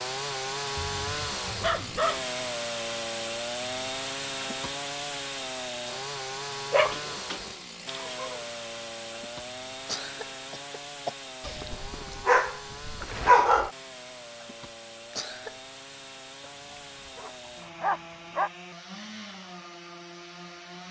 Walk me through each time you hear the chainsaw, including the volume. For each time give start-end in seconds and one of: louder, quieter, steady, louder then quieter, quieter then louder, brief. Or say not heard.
0.0-20.8 quieter.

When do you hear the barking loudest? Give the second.
13 s.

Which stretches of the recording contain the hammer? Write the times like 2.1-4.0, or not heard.
not heard.